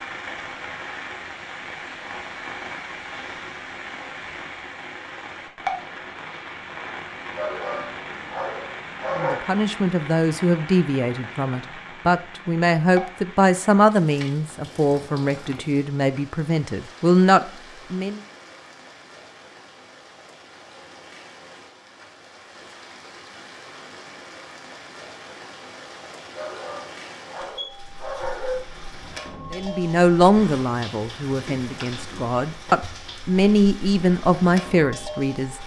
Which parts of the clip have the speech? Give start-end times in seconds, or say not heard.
9.2-18.2, 29.5-35.5.